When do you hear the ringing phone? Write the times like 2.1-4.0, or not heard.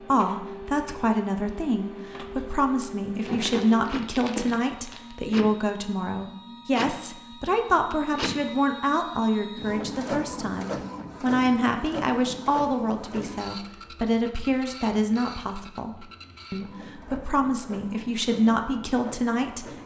not heard.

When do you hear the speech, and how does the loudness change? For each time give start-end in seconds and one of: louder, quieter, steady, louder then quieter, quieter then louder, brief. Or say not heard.
0.1-19.8 steady.